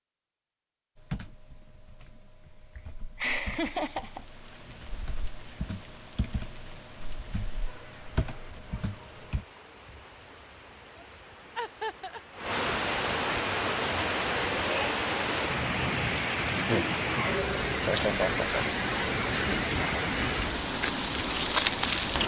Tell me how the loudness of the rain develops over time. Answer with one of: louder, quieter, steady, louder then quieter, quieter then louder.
louder.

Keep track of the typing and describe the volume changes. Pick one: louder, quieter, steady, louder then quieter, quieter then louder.
louder.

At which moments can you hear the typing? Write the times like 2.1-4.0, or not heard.
0.9-9.4.